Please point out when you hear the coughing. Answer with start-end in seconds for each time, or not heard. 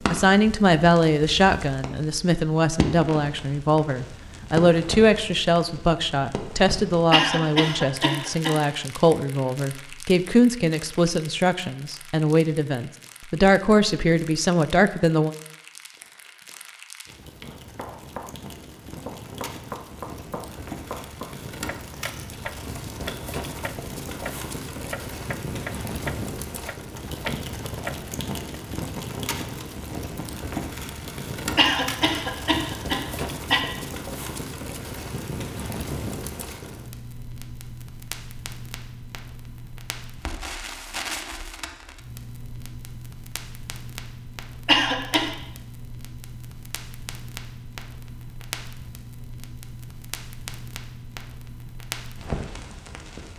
7.1-8.7, 31.6-33.6, 44.6-45.4.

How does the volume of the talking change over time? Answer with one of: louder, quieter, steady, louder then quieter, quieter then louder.
steady.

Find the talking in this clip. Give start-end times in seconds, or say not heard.
0.0-15.3.